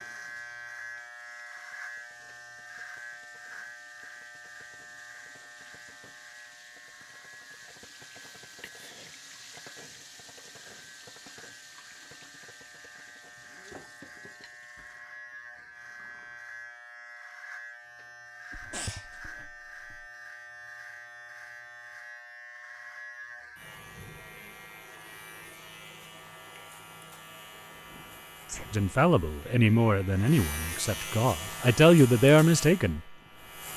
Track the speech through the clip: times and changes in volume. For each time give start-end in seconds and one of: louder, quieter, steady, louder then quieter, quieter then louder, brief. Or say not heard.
28.7-33.0 quieter then louder.